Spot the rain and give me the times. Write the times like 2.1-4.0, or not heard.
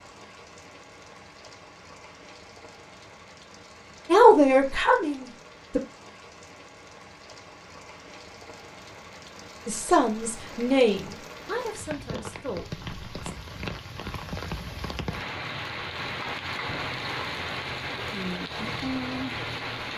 0.0-19.9.